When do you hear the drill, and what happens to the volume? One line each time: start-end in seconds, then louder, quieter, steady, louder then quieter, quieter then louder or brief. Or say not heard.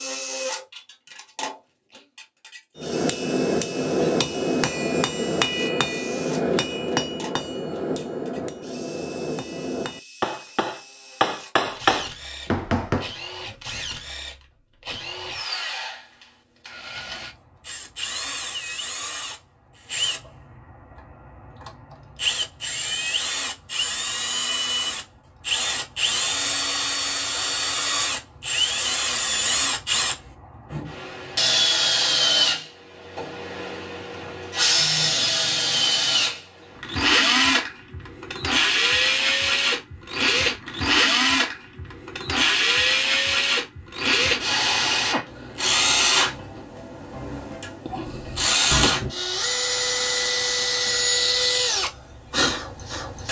0.0-53.2 louder.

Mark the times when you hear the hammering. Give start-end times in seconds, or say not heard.
2.8-13.1.